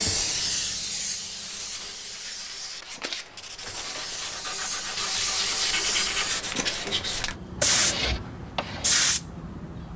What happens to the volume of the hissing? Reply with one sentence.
The volume of the hissing goes down, then up.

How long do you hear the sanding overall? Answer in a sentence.
The sanding can be heard for 8 seconds in total.